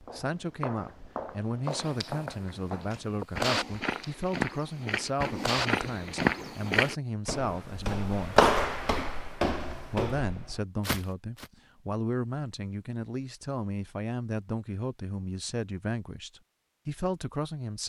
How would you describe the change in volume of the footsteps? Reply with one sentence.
The volume of the footsteps goes up, then down.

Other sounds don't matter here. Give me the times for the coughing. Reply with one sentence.
You can't hear the coughing here.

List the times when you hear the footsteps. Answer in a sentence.
The footsteps can be heard from 0.0 to 11.5 s.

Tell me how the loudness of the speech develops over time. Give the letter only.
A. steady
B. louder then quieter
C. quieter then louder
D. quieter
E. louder
A.